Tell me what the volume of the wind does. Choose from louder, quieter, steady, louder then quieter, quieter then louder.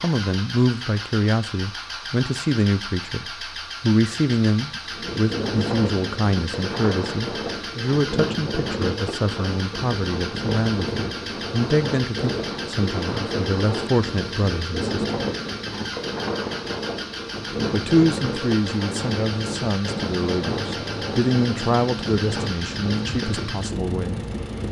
steady.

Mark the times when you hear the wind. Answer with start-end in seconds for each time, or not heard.
4.8-24.6.